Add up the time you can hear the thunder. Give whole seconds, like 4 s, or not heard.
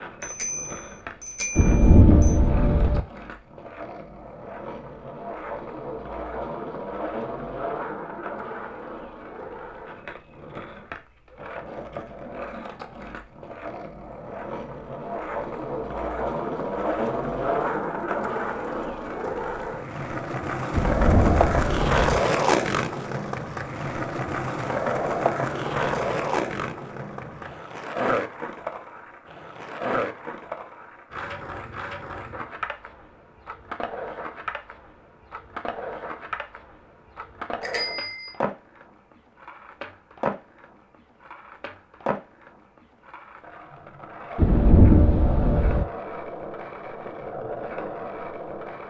4 s.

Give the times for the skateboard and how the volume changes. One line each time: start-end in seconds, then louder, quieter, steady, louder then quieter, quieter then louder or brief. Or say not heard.
0.0-48.8 louder then quieter.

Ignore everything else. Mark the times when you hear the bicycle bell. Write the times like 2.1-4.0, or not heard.
0.2-2.4, 37.6-38.3.